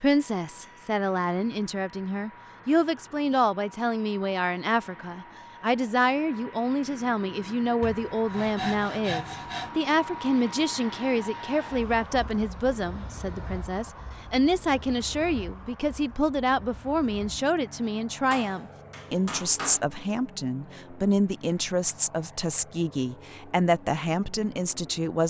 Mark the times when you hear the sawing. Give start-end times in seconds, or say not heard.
7.8-9.7.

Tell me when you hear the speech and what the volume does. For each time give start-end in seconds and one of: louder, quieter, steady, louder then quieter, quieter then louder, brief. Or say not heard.
0.0-25.2 steady.